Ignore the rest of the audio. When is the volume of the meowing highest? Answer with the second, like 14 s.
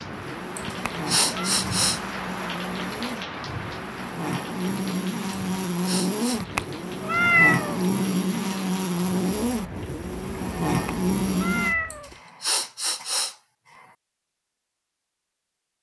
7 s.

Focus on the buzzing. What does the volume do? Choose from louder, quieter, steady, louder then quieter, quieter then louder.
louder.